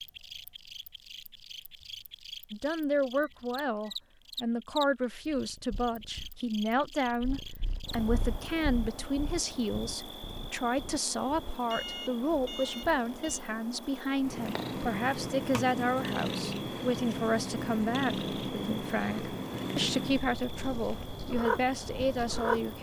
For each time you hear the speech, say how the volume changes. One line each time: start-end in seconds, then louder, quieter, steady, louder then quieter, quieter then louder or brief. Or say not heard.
2.5-22.7 steady.